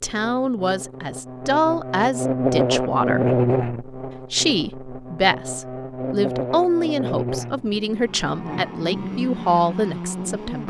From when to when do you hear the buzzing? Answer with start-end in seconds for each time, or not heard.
0.0-10.6.